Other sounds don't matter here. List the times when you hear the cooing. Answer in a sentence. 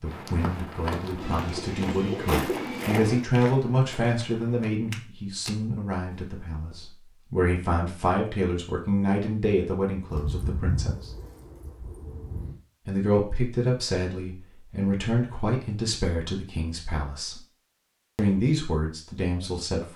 The cooing can be heard from 1.2 to 3.2 s and from 10.1 to 12.6 s.